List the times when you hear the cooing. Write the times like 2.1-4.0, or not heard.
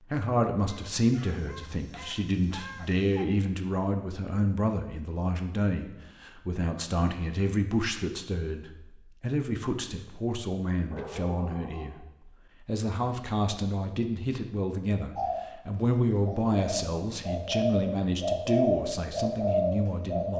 15.2-20.3.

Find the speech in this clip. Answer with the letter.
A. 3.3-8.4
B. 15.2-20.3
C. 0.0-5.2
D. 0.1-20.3
D.